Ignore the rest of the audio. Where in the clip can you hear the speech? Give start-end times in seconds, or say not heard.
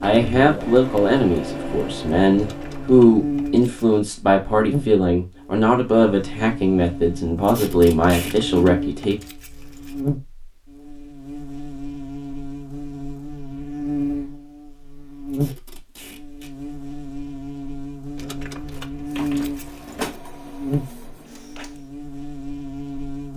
0.0-9.2.